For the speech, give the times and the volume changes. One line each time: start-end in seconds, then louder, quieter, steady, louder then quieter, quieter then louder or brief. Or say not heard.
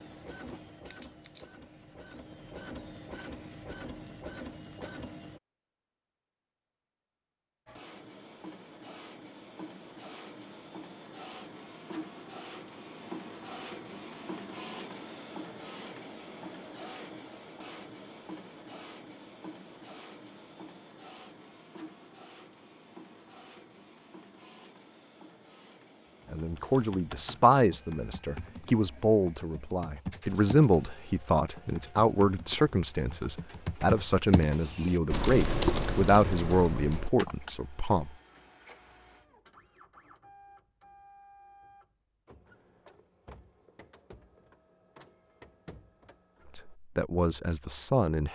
26.3-38.1 steady
46.5-48.2 brief.